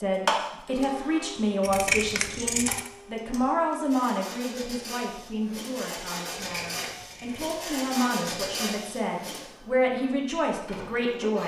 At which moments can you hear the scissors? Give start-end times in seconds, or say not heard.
1.6-2.9, 6.2-7.5.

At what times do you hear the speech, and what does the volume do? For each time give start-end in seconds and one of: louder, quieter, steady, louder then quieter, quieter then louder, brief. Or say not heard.
0.0-11.4 quieter then louder.